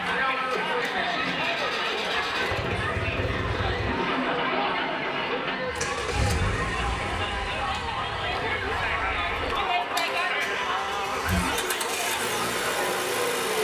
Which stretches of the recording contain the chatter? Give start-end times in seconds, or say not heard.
0.0-13.5.